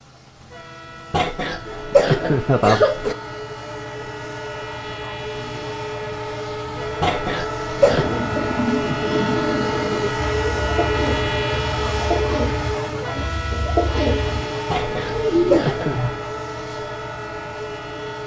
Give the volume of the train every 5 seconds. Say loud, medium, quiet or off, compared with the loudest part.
medium, loud, loud, medium.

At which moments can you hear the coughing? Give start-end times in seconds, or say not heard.
1.1-3.1, 7.0-8.2, 14.7-16.0.